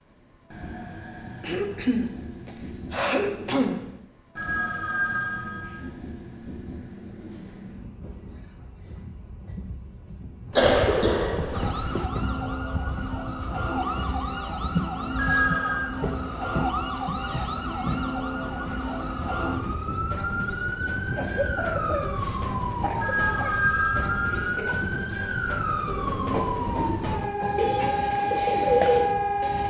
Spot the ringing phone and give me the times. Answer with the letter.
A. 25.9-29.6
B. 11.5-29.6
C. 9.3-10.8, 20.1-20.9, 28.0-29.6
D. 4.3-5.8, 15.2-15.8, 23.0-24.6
D.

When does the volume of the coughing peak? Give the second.
11 s.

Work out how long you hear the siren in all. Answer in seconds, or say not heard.
18 s.